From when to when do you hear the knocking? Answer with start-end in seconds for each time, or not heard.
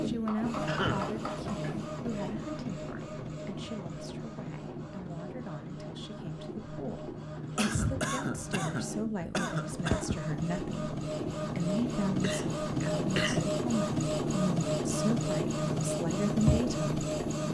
0.2-1.9.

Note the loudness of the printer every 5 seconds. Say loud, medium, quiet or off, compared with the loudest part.
medium, medium, loud, loud.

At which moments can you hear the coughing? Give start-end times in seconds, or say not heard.
0.7-1.1, 7.5-10.2, 12.1-13.4.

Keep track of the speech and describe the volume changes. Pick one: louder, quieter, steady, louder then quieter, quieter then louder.
quieter then louder.